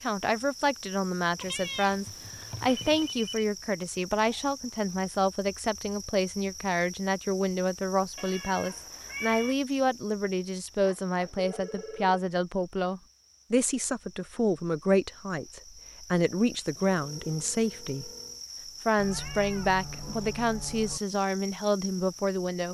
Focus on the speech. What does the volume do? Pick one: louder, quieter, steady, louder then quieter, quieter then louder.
steady.